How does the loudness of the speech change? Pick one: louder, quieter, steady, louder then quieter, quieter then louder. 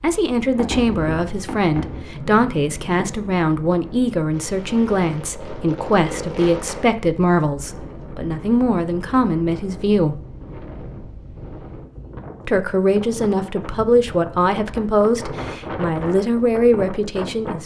steady.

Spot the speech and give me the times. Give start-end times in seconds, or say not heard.
0.0-10.2, 12.4-17.6.